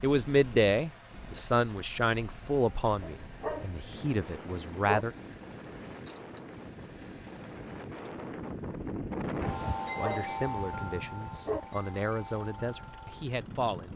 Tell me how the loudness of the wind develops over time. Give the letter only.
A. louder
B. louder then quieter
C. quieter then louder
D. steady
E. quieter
B.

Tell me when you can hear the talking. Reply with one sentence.
You can hear the talking from 0.0 to 5.1 s and from 9.9 to 13.9 s.